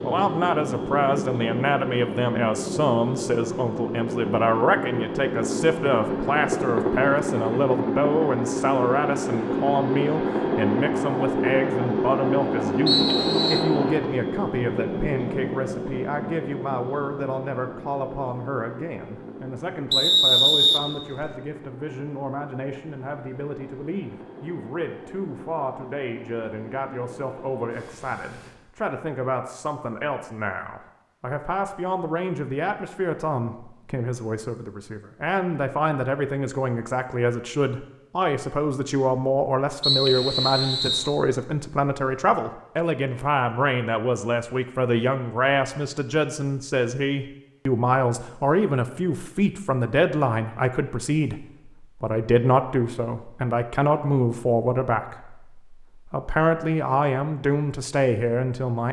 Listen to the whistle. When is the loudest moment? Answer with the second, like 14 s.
20 s.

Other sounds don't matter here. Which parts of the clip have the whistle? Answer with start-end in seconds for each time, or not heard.
12.8-13.7, 19.9-21.3, 39.8-41.1.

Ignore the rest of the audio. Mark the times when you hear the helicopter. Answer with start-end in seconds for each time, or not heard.
0.0-28.6.